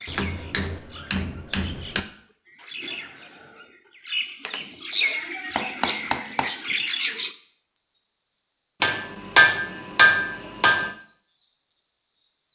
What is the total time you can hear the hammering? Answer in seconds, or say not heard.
6 s.